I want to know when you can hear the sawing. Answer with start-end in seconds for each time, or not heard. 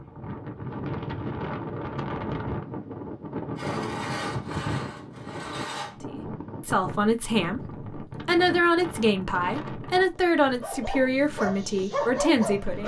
3.5-6.0.